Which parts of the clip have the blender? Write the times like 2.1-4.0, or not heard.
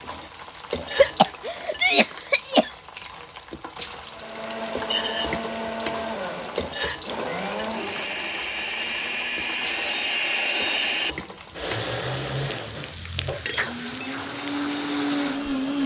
4.0-15.8.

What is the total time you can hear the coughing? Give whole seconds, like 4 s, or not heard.
2 s.